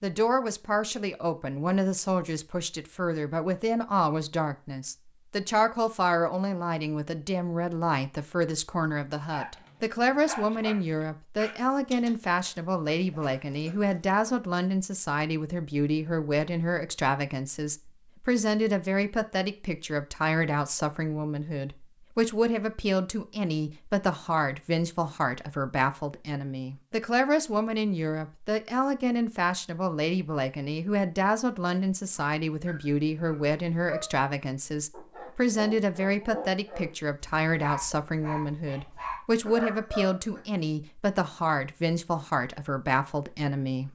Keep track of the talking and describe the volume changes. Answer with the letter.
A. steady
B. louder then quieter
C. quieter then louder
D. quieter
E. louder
A.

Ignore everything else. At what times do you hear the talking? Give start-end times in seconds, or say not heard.
0.0-43.8.